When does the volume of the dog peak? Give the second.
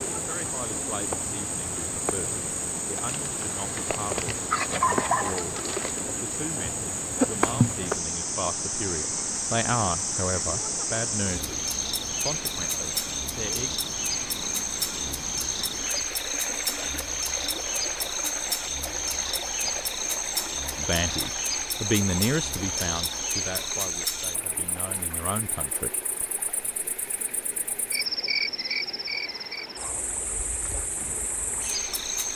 5 s.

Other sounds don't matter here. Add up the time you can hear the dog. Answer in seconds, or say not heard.
3 s.